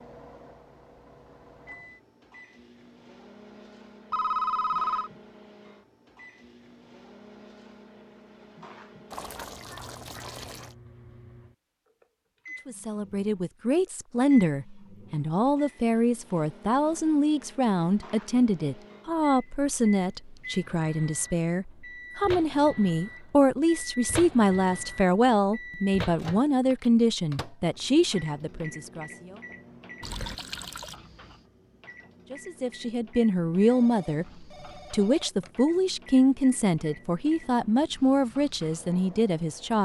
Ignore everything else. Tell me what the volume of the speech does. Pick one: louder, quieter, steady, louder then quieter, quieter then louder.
steady.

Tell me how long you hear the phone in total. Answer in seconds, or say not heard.
3 s.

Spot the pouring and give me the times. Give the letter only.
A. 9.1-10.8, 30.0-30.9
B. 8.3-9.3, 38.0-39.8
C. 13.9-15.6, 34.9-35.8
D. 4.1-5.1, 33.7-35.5
A.